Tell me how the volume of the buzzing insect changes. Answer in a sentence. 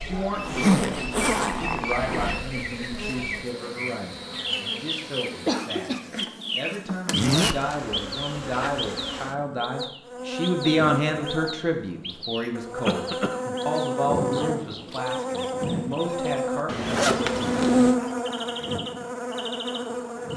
The loudness of the buzzing insect goes up.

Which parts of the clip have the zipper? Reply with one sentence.
You can hear the zipper from 0.4 to 2.4 s, from 7.1 to 7.6 s and from 16.6 to 17.9 s.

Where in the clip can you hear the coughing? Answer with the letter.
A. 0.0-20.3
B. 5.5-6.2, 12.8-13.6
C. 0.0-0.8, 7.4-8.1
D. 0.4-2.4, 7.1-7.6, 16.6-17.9
B.